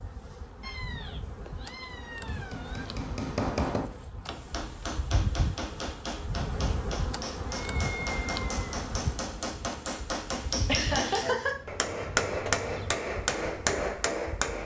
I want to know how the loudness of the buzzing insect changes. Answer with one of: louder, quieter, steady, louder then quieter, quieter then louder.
louder then quieter.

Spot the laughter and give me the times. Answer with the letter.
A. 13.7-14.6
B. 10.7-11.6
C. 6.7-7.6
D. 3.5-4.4
B.